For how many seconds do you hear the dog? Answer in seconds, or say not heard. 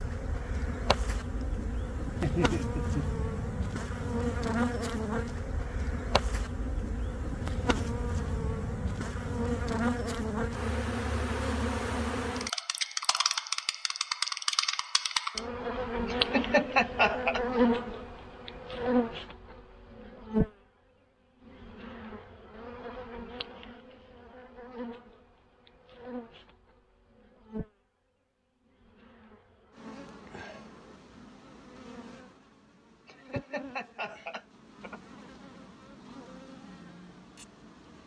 not heard.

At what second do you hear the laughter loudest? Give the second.
17 s.